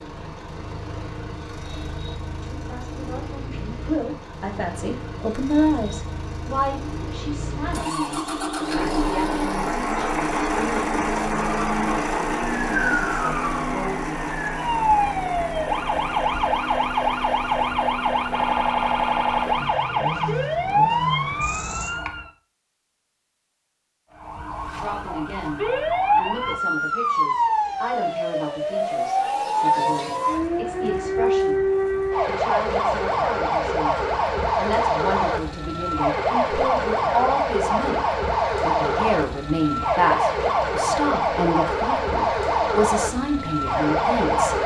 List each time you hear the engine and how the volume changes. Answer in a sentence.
The engine can be heard from 0.0 to 21.9 s, getting louder then quieter.